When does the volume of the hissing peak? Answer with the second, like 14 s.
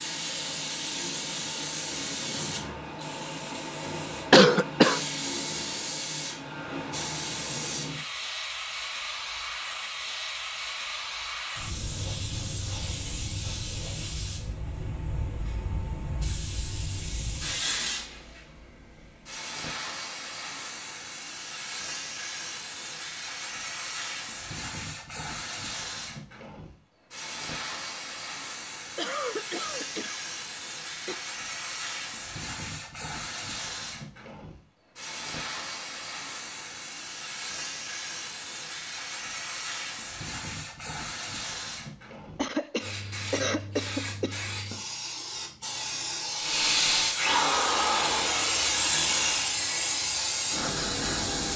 49 s.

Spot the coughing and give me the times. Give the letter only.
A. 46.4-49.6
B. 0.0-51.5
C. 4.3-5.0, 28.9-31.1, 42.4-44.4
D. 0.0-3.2
C.